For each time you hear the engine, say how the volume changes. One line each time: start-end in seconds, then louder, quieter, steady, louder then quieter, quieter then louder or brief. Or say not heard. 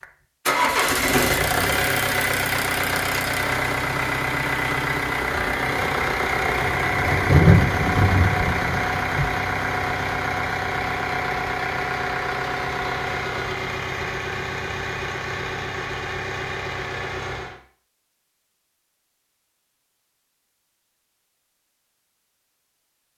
0.0-17.6 quieter.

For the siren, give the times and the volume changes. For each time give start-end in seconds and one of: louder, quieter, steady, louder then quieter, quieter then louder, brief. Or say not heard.
not heard.